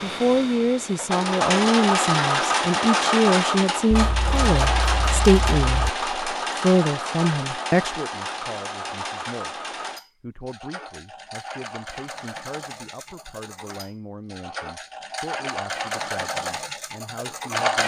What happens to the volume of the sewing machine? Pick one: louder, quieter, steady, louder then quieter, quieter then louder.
quieter then louder.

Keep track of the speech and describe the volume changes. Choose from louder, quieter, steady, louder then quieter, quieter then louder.
quieter.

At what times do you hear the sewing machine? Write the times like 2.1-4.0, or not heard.
0.0-17.8.